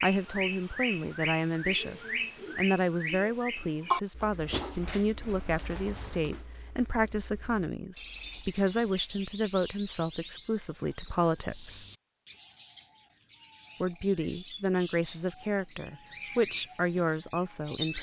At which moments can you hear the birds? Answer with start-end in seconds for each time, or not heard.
0.0-17.9.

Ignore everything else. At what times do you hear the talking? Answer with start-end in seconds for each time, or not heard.
0.0-11.8, 13.8-17.9.